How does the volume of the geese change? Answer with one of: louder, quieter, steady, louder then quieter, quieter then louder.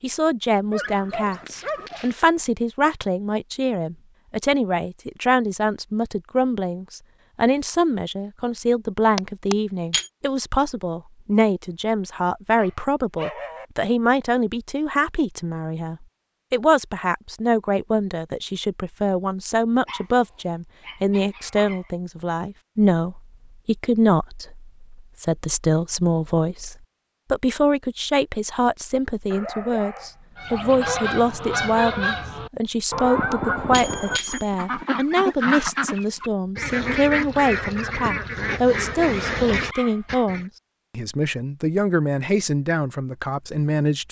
steady.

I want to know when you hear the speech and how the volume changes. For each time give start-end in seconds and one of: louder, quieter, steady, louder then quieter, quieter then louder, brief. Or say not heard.
0.0-44.0 steady.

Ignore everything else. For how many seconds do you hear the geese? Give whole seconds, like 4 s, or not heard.
10 s.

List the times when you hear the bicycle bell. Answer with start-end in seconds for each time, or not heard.
9.2-10.1, 33.0-34.5.